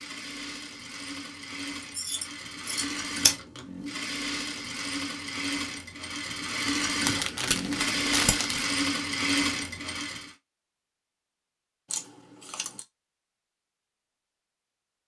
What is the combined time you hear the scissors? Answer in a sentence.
The scissors can be heard for 3 seconds in total.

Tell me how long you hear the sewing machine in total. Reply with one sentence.
You can hear the sewing machine for 10 seconds altogether.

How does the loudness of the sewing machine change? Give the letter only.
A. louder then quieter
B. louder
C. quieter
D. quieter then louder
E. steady
B.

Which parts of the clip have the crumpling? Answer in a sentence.
The crumpling can be heard from 7.0 to 8.7 s.